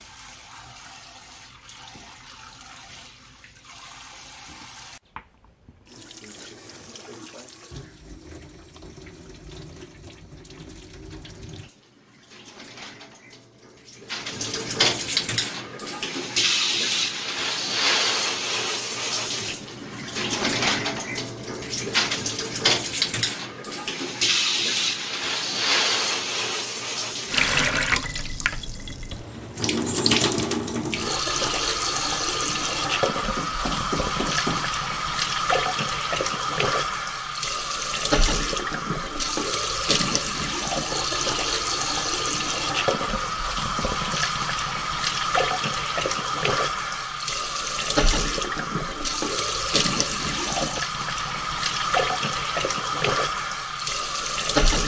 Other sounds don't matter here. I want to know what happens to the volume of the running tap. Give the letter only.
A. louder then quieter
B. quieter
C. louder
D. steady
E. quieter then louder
C.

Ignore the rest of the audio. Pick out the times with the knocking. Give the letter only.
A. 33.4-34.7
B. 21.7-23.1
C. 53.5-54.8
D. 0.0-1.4
A.